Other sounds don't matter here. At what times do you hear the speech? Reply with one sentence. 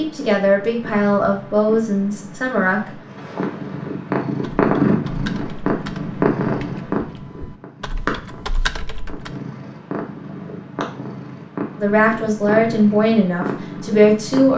You can hear the speech from 0.0 to 2.9 s and from 11.8 to 14.5 s.